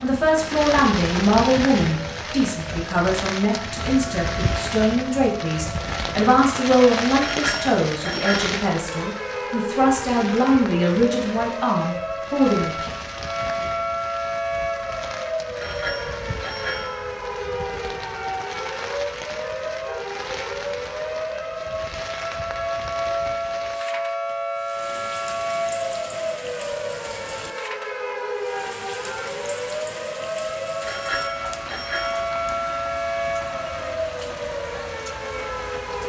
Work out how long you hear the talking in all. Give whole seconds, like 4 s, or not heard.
13 s.